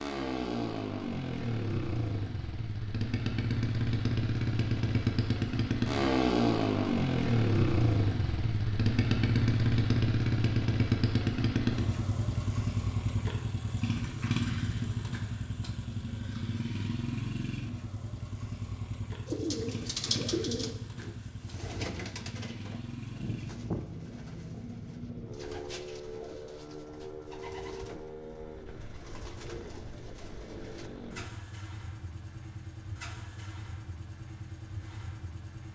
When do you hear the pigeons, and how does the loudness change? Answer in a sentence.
The pigeons can be heard from 19.2 to 30.9 s, getting quieter.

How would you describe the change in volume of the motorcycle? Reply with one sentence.
The volume of the motorcycle goes down.